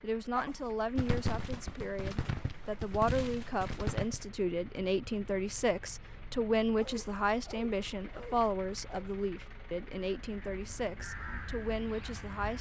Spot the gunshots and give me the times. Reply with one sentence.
You can hear the gunshots from 0.9 to 4.2 s.